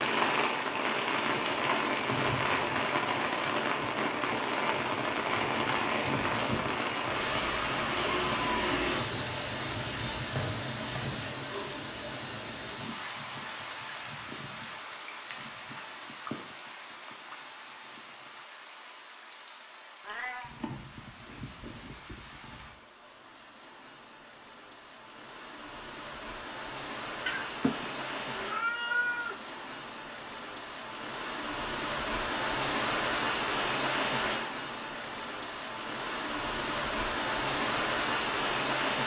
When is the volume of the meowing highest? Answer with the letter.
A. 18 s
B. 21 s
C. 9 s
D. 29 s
D.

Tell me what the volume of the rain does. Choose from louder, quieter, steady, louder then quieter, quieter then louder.
quieter then louder.